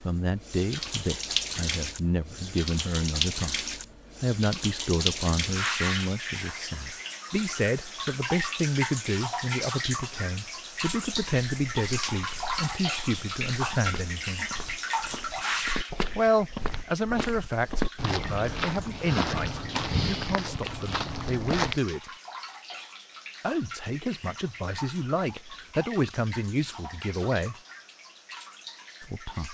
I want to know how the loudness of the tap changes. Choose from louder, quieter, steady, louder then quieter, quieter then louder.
quieter.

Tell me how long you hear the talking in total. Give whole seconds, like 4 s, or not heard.
25 s.